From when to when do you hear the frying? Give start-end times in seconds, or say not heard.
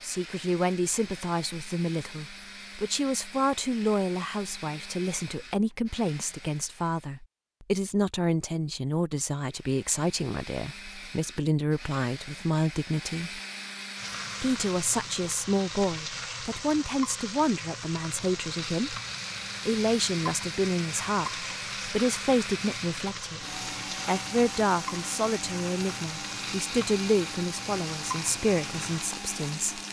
13.9-29.8.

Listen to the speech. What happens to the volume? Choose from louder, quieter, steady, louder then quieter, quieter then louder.
steady.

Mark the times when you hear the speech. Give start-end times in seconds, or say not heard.
0.0-13.4, 14.4-19.0, 19.6-23.4, 24.1-29.8.